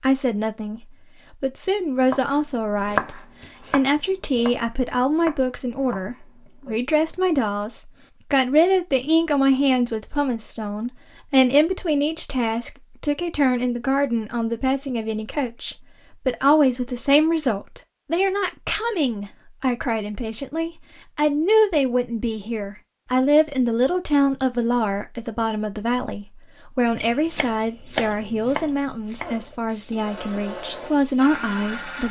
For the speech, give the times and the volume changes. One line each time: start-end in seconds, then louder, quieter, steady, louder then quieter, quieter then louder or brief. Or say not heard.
0.0-32.0 steady.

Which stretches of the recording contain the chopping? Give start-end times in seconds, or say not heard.
2.0-7.2, 26.9-29.4.